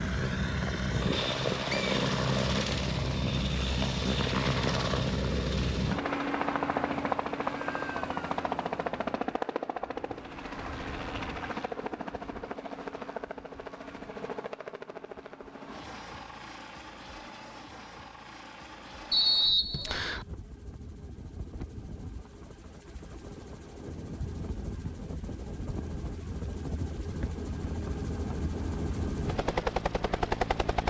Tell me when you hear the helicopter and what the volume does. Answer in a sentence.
You can hear the helicopter from 0.0 to 30.8 s, getting quieter then louder.